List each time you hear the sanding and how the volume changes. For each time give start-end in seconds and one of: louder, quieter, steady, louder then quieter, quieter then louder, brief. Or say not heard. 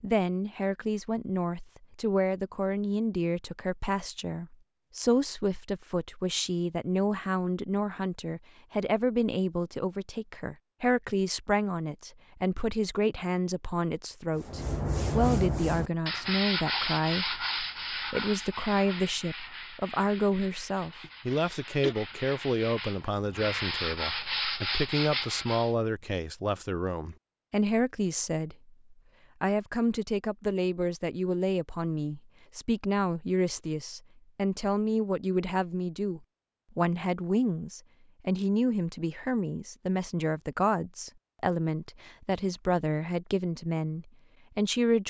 14.3-25.8 quieter then louder.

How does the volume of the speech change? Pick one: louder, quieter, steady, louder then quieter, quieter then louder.
steady.